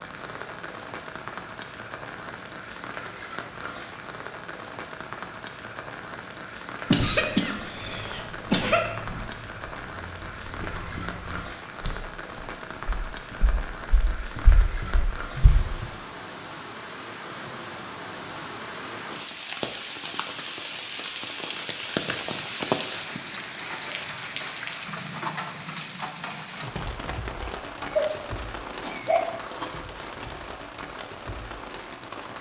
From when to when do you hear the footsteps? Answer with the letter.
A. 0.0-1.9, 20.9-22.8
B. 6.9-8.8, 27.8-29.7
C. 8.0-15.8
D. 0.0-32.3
C.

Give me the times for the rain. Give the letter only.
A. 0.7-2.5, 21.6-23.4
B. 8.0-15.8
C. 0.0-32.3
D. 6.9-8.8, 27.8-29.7
C.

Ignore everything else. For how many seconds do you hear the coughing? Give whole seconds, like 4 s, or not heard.
4 s.